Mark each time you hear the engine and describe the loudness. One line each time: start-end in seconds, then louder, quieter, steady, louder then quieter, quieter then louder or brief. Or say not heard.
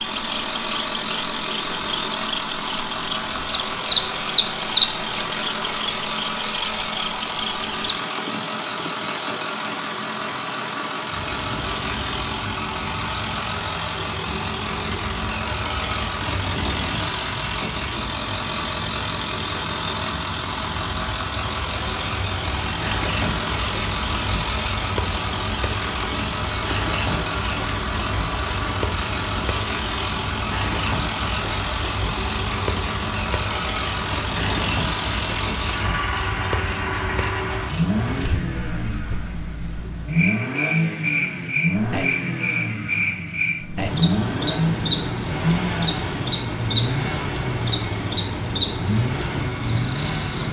0.0-50.4 steady.